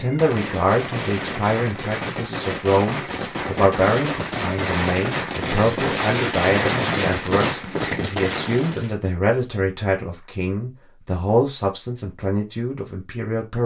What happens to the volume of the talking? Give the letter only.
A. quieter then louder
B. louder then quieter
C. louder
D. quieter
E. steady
E.